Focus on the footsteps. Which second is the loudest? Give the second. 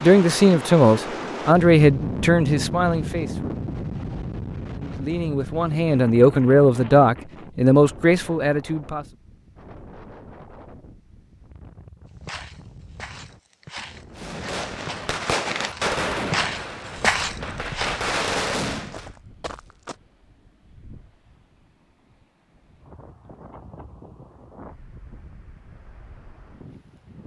17 s.